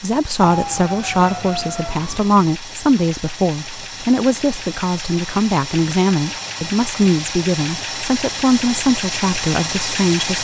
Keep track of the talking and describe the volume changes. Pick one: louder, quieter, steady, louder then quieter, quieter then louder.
steady.